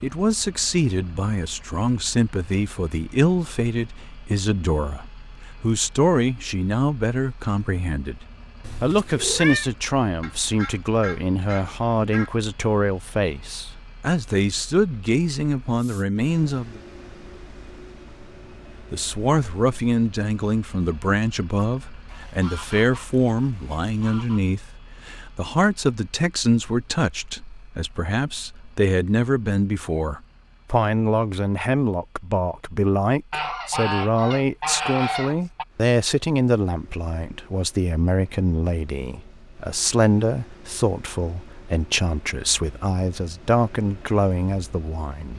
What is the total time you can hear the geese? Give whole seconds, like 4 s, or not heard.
7 s.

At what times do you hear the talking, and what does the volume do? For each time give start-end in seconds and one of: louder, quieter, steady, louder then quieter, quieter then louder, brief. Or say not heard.
0.0-16.8 steady
18.9-45.3 steady.